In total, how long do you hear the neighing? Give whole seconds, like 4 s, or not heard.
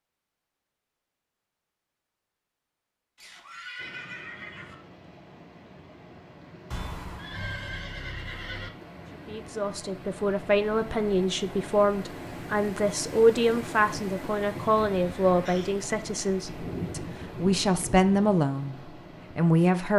5 s.